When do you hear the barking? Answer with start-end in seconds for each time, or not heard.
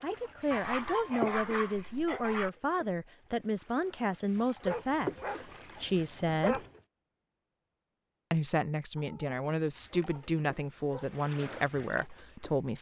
0.5-2.5, 4.6-6.8, 8.9-11.2.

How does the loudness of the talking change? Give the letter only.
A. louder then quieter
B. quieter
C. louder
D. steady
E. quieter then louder
D.